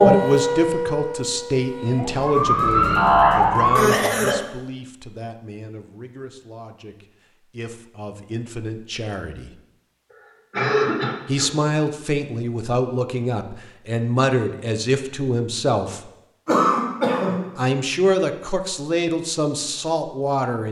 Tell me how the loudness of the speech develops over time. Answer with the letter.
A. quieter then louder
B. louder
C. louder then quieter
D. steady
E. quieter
A.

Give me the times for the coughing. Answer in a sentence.
You can hear the coughing from 3.8 to 4.3 s, from 10.5 to 11.5 s and from 16.4 to 17.5 s.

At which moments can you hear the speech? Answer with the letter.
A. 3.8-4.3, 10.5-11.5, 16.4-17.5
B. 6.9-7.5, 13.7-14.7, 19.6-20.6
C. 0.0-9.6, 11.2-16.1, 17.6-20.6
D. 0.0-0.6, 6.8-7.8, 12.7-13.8
C.